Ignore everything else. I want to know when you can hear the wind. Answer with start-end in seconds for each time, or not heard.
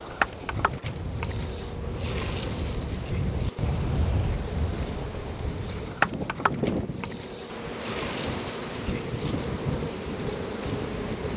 0.0-11.3.